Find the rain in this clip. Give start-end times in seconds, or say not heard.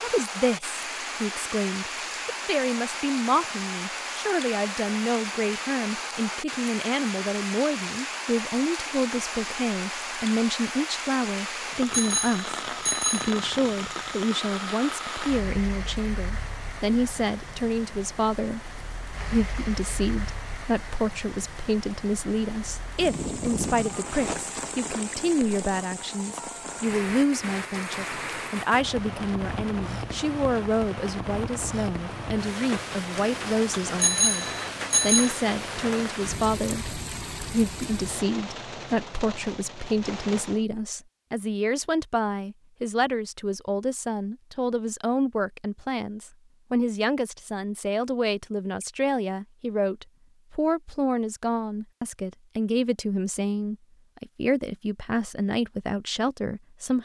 0.0-40.6.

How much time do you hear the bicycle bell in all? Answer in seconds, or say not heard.
3 s.